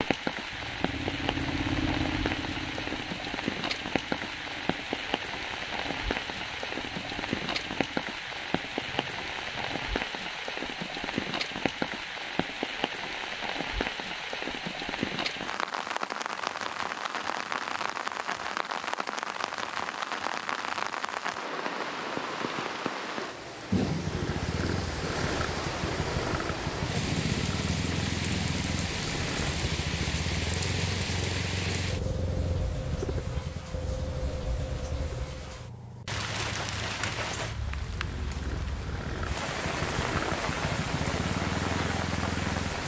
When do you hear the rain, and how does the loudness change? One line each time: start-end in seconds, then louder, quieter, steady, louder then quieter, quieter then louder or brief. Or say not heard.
0.0-42.8 steady.